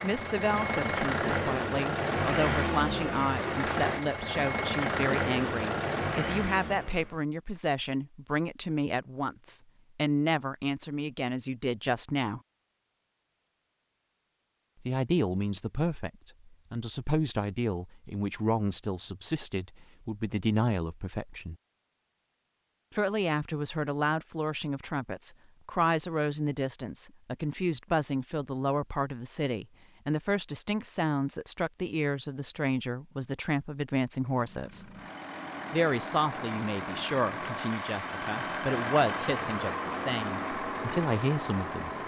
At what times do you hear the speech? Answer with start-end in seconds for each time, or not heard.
0.0-12.4, 14.8-21.6, 22.9-34.9, 35.7-41.9.